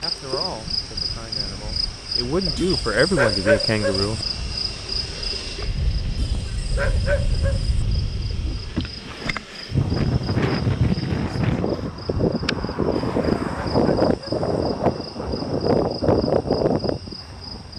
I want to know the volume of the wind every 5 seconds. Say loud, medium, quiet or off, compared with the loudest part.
quiet, medium, loud, loud.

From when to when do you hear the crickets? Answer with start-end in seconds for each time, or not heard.
0.0-17.7.